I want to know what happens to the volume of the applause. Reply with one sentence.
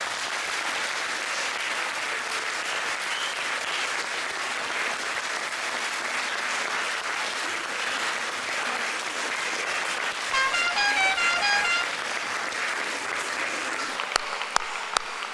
The volume of the applause stays about the same.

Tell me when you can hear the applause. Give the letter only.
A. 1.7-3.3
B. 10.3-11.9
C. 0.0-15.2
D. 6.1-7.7
C.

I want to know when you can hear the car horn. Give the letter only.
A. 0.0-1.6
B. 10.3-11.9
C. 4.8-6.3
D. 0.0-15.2
B.